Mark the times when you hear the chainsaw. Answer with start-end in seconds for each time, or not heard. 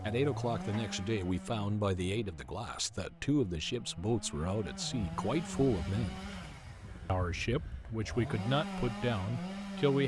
0.0-10.0.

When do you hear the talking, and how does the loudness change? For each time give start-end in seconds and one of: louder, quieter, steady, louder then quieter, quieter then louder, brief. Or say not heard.
0.1-6.2 steady
7.0-10.0 brief.